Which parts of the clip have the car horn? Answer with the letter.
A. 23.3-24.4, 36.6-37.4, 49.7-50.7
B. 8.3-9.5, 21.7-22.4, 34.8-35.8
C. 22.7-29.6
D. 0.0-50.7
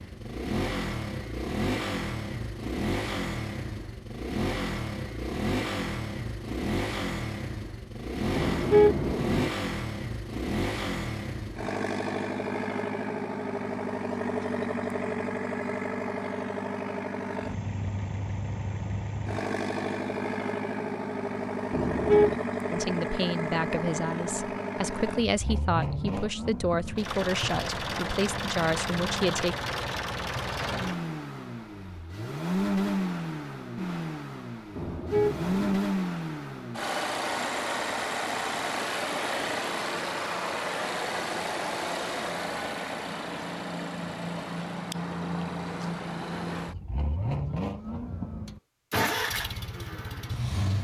B.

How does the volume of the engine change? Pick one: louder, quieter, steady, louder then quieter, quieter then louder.
steady.